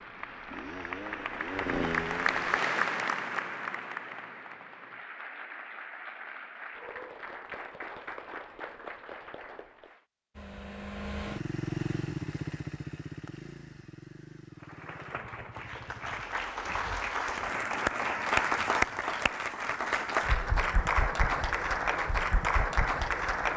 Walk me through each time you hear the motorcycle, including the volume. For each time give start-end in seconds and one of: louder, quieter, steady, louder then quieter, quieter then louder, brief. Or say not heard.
0.0-2.5 brief
10.3-16.2 quieter.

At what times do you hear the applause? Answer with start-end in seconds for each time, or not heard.
0.0-10.1, 14.6-23.5.